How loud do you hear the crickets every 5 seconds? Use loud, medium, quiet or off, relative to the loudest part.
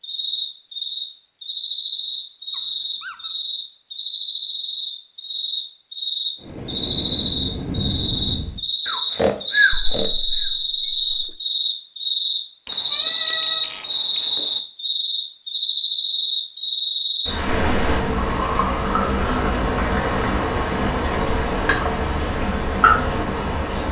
medium, loud, loud, loud, loud.